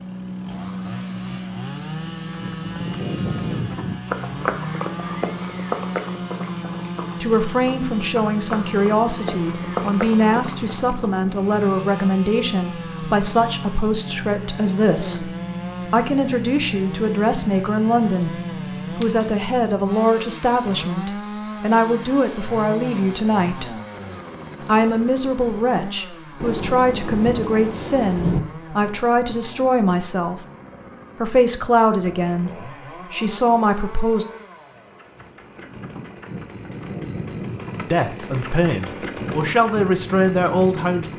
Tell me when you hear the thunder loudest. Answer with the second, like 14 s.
28 s.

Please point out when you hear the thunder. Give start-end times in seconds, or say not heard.
26.4-28.4.